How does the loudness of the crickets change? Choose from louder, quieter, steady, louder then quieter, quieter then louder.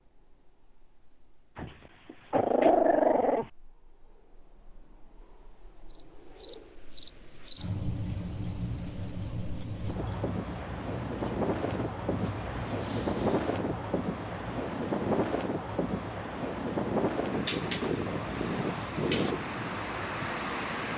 quieter.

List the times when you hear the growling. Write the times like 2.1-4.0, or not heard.
1.6-3.5, 17.4-19.4.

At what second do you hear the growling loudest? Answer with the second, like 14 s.
3 s.